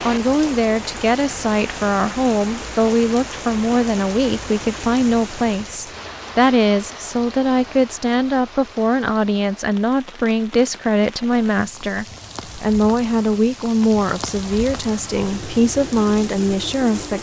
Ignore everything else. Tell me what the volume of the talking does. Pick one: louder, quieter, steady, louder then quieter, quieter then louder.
steady.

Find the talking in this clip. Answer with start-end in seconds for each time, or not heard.
0.1-17.1.